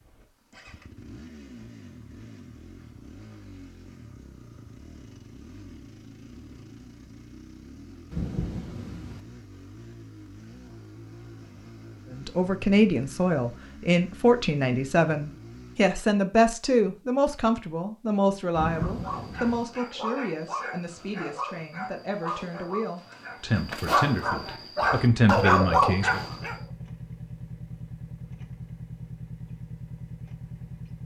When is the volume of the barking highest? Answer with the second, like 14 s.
26 s.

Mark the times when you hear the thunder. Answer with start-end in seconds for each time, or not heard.
8.1-9.2, 18.6-19.6.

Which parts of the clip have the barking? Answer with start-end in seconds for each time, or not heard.
18.6-26.6.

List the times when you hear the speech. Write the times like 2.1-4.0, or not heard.
12.1-26.2.